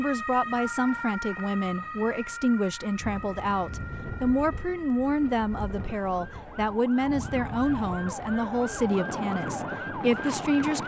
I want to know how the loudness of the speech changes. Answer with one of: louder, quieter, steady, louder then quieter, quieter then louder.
steady.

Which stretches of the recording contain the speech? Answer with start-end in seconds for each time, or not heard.
0.0-10.8.